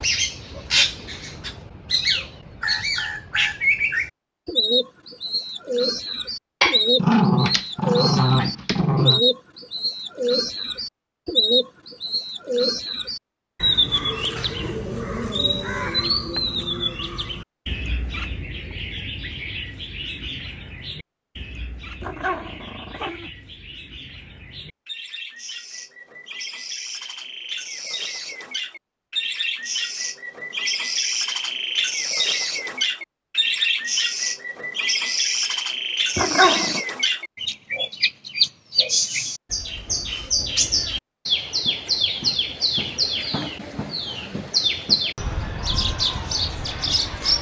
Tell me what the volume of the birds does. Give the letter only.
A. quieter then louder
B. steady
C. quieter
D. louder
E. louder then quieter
A.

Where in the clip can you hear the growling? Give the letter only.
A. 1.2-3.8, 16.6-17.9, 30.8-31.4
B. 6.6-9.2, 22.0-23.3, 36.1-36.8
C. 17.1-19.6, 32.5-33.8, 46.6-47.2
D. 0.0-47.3
B.